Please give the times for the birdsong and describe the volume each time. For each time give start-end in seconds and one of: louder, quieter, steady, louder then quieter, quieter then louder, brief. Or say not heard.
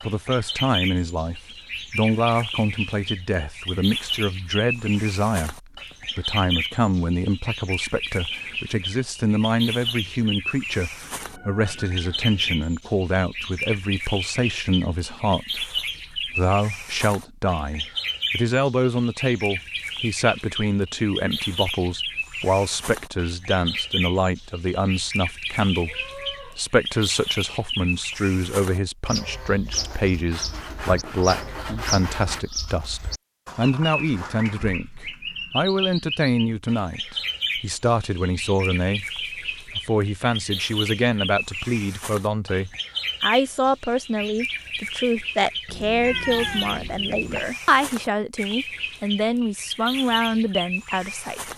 0.0-51.5 steady.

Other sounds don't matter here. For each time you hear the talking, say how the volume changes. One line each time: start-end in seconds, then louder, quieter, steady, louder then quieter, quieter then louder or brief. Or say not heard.
0.0-51.5 steady.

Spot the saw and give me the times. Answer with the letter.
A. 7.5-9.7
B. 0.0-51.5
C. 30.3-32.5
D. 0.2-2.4
C.